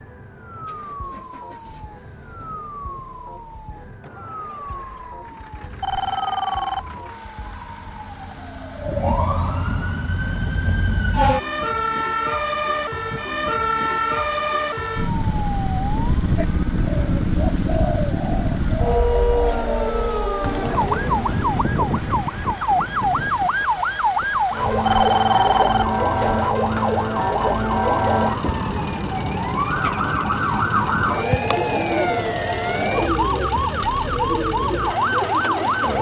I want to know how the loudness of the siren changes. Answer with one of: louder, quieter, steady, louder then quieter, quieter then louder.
louder.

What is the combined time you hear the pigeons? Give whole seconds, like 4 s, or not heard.
10 s.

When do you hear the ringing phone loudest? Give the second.
25 s.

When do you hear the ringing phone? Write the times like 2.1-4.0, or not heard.
5.6-7.2, 24.6-26.4.